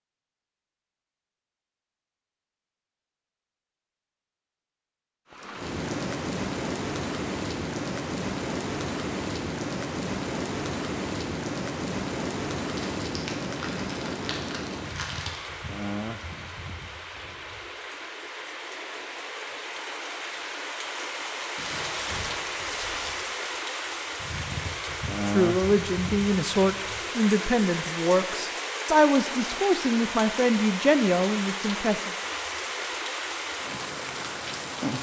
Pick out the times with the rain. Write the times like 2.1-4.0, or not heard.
5.3-34.9.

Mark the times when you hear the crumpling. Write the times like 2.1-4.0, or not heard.
12.8-15.4, 21.6-23.2.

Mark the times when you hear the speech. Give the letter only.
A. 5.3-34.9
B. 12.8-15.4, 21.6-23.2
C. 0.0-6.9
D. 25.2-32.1
D.